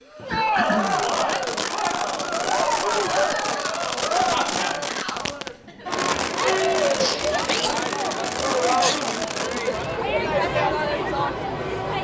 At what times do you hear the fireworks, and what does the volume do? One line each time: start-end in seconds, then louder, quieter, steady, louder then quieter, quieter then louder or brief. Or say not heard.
0.6-9.9 steady.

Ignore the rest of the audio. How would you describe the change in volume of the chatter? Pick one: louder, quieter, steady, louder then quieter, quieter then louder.
steady.